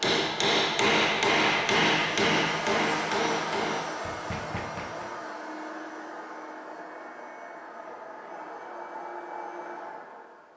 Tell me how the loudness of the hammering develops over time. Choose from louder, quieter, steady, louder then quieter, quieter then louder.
quieter.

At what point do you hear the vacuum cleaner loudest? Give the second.
3 s.